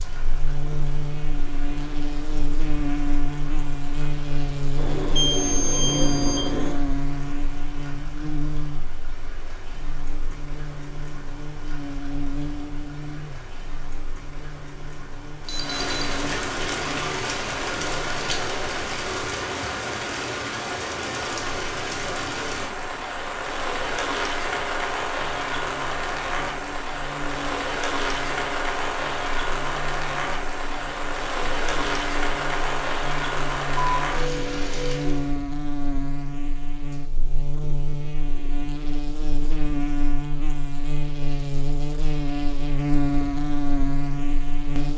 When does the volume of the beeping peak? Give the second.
5 s.